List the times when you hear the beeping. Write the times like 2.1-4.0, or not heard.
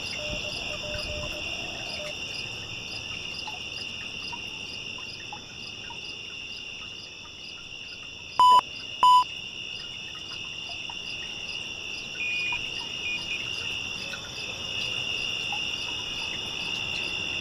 0.1-2.1, 8.3-9.2, 12.2-13.2.